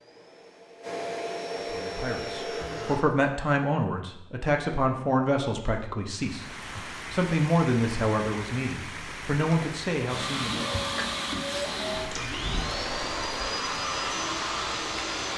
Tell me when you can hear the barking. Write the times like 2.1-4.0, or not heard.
not heard.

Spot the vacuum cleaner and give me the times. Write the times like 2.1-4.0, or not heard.
0.0-3.0, 9.9-15.3.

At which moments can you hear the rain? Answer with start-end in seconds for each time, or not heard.
6.1-15.3.